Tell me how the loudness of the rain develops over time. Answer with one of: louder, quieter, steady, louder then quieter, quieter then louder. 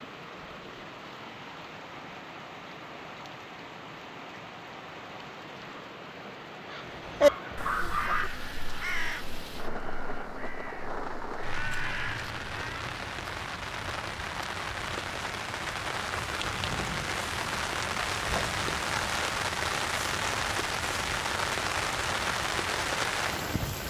louder.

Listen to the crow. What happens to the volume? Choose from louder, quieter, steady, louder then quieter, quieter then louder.
quieter then louder.